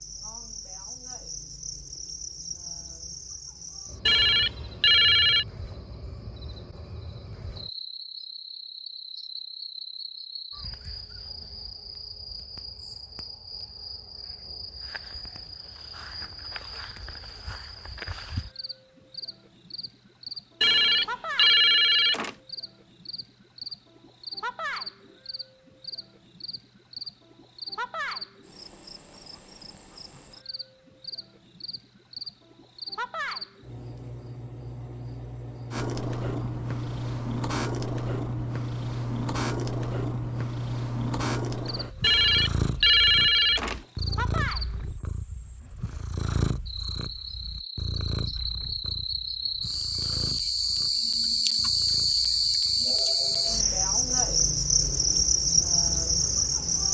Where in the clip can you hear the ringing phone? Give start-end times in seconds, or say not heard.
4.0-5.5, 20.6-22.3, 42.0-43.8.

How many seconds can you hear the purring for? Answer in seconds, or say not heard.
21 s.